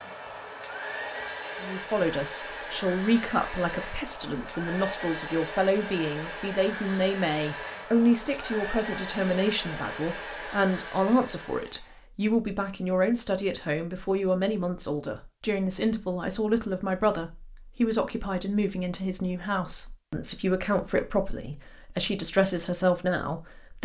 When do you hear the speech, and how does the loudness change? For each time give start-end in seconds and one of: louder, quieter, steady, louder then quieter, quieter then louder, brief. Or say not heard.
1.6-23.7 steady.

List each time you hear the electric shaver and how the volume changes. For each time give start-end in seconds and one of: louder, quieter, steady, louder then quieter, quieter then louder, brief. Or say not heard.
not heard.